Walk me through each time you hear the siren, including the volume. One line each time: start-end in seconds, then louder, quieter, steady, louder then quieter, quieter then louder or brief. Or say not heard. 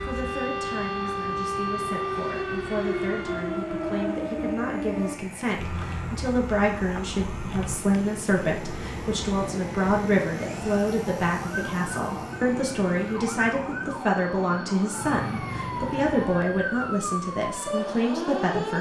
0.0-18.7 quieter then louder.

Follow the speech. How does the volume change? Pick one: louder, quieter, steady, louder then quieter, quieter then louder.
louder.